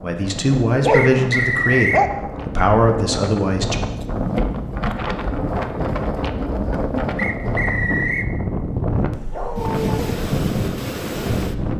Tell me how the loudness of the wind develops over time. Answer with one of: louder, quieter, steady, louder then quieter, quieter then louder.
louder.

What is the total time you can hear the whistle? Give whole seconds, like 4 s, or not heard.
2 s.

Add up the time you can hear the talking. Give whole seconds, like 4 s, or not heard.
4 s.